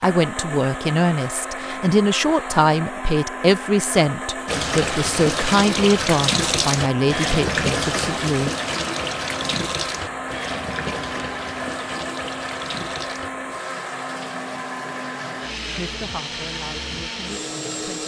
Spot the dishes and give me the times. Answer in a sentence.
You can't hear the dishes here.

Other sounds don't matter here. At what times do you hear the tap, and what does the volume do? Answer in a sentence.
The tap can be heard from 4.5 to 18.0 s, getting quieter.